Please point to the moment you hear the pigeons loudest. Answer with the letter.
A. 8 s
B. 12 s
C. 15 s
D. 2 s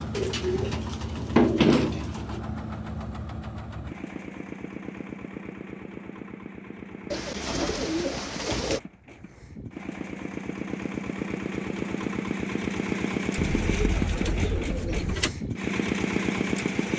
D.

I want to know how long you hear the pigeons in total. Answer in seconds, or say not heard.
6 s.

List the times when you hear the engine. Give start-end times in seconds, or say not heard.
0.0-16.9.